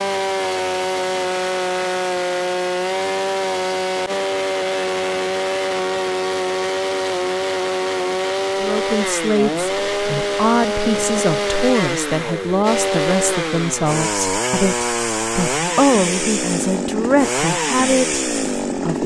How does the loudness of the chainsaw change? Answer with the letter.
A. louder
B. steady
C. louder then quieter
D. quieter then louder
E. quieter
B.